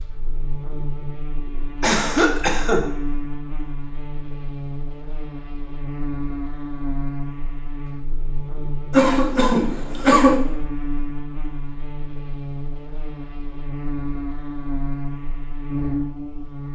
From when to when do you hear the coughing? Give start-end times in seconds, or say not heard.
1.8-2.8, 8.9-10.3.